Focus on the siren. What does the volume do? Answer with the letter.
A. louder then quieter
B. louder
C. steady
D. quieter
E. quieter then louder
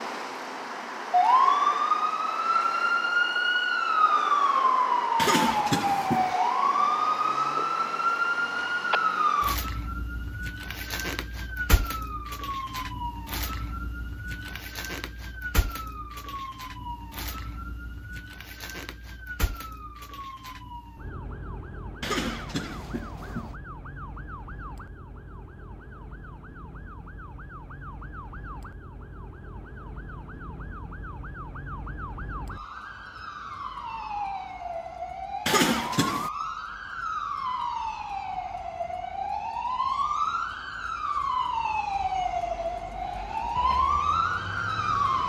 E.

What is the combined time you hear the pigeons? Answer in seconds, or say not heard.
not heard.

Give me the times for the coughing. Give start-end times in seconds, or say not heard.
5.2-6.3, 22.0-23.6, 35.5-36.3.